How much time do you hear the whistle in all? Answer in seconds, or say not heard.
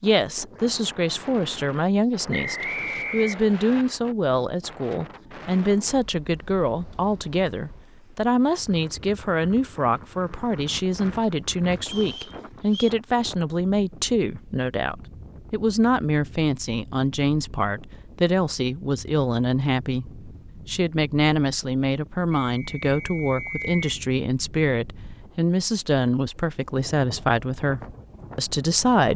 4 s.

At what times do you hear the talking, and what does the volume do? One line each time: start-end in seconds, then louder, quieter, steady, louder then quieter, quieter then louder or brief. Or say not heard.
0.0-29.1 steady.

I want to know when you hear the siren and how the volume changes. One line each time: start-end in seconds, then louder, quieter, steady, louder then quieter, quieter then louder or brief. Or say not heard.
not heard.